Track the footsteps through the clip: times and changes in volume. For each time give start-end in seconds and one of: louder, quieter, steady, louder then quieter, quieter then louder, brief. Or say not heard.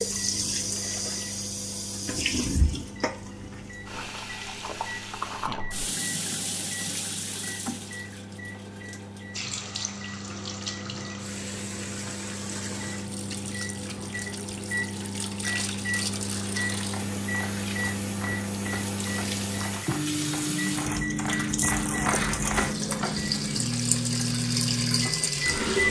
16.9-23.4 louder.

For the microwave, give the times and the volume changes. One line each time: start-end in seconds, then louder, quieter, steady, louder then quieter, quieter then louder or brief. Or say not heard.
0.0-25.8 louder.